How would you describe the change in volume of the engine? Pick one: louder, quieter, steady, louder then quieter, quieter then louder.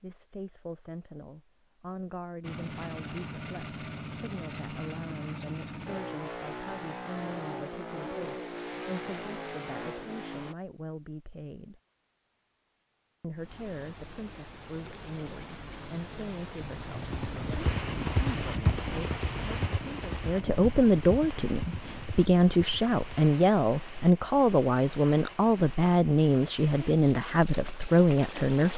steady.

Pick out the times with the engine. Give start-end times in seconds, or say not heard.
2.4-10.6.